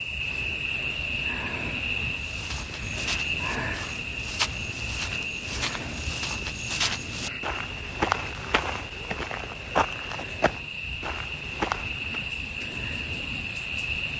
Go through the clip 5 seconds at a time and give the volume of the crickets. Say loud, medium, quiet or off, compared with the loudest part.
loud, medium, loud.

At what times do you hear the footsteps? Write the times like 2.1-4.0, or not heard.
2.0-12.2.